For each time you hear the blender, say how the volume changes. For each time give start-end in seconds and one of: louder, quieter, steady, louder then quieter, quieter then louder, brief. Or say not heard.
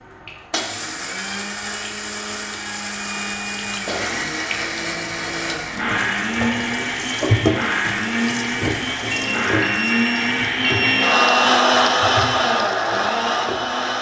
0.0-13.9 louder.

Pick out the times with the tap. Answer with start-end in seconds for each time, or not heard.
0.0-13.9.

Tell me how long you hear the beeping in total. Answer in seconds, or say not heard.
2 s.